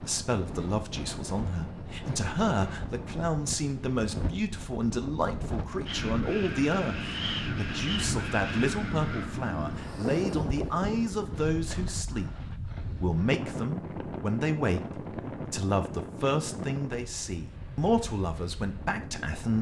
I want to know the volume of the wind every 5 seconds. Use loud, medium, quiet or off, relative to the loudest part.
medium, loud, loud, medium.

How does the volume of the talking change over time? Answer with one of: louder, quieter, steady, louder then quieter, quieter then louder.
steady.